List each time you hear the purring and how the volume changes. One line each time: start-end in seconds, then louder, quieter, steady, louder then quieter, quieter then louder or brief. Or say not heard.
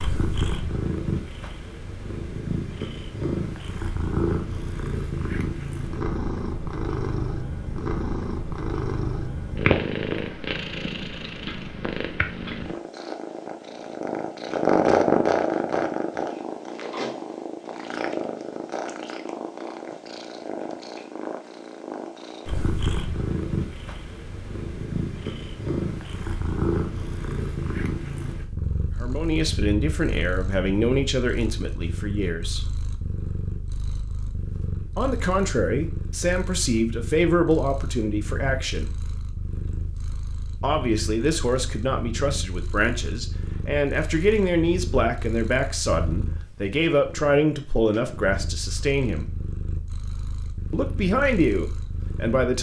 0.0-52.5 quieter.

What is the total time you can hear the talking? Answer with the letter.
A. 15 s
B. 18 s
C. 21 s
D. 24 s
B.